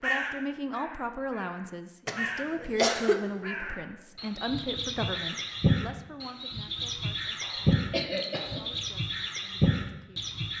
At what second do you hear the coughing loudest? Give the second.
3 s.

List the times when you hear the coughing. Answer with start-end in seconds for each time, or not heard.
2.0-3.2, 7.4-8.8.